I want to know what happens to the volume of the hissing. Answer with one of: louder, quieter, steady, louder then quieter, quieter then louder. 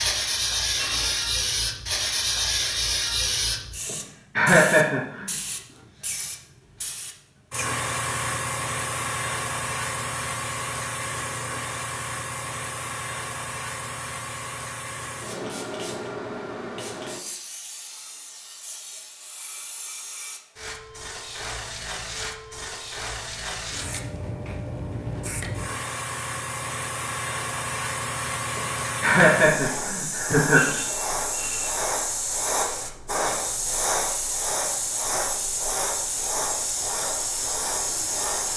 quieter then louder.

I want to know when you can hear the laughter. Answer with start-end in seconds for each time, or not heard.
3.9-5.3, 28.6-30.8.